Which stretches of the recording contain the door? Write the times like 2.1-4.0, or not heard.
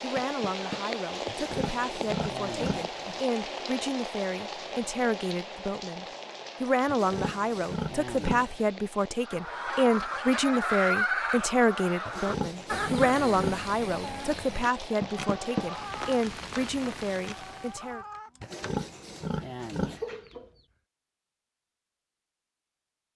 0.1-0.8, 15.0-15.7.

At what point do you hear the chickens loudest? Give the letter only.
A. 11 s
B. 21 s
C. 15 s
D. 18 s
A.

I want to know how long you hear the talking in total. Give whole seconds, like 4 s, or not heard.
18 s.